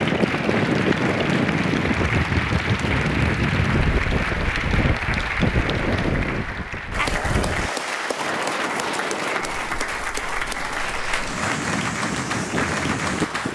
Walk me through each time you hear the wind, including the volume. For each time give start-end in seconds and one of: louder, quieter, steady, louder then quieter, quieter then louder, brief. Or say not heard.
0.0-13.4 quieter.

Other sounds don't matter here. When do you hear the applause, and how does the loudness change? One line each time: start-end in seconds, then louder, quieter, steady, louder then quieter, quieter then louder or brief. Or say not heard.
0.0-13.4 steady.